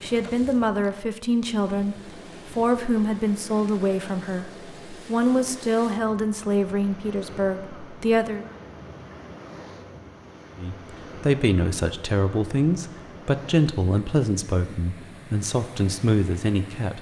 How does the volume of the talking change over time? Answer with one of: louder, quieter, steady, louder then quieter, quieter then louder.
steady.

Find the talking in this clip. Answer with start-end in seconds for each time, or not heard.
0.0-8.4, 10.6-16.9.